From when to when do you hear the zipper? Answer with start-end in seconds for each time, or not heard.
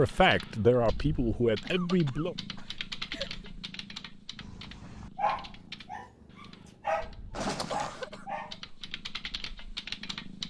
7.3-8.1.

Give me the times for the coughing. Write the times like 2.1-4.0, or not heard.
1.6-3.5, 7.7-8.2.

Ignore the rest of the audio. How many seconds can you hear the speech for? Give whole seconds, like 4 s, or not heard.
2 s.